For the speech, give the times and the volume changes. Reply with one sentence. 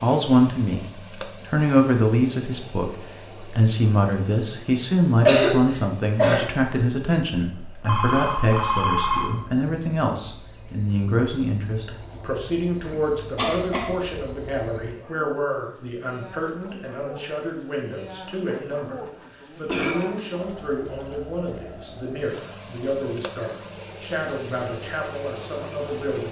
The speech can be heard from 0.0 to 26.2 s, getting quieter.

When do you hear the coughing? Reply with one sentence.
The coughing can be heard from 5.2 to 6.5 s, from 12.9 to 13.9 s and from 19.6 to 20.1 s.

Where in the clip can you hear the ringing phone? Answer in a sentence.
You can hear the ringing phone from 7.5 to 9.4 s.